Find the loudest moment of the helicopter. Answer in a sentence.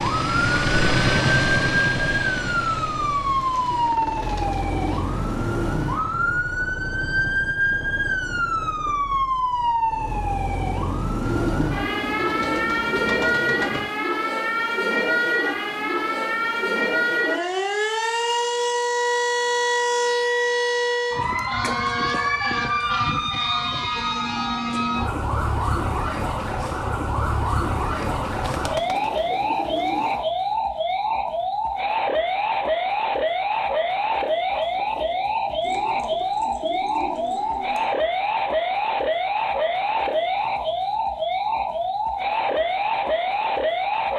The volume of the helicopter peaks at 1 second.